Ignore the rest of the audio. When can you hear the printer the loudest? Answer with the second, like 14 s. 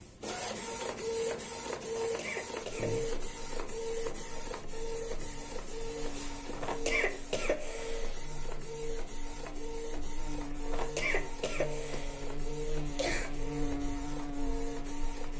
2 s.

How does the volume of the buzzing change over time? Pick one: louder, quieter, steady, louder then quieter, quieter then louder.
louder.